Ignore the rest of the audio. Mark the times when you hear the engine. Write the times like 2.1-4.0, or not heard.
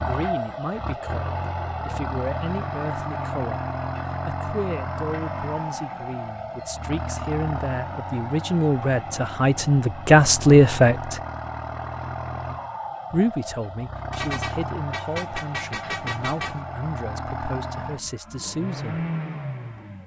0.0-20.0.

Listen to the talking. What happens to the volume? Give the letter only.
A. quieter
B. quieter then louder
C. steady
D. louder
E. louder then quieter
E.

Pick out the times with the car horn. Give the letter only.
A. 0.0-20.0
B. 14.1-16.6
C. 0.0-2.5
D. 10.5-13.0
B.